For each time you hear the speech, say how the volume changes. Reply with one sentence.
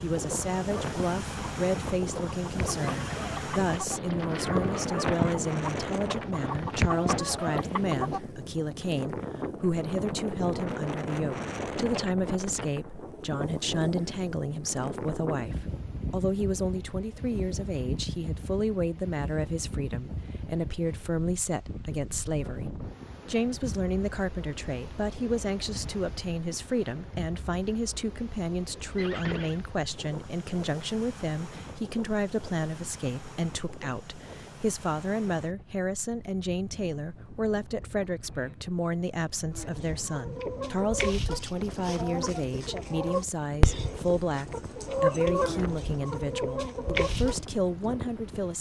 You can hear the speech from 0.0 to 48.5 s, at a steady volume.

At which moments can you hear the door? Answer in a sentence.
You can't hear the door here.